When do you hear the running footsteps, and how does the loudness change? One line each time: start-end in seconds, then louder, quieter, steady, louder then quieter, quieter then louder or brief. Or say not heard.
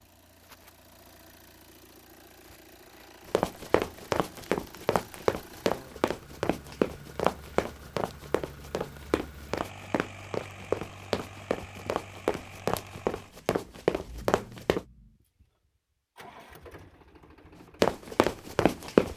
3.3-14.8 quieter then louder
17.8-19.1 brief.